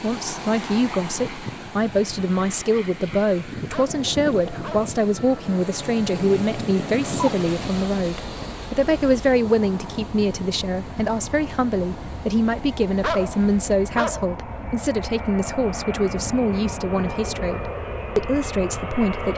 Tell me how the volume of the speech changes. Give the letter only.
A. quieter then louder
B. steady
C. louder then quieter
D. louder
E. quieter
B.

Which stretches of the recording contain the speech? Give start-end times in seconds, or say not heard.
0.0-19.3.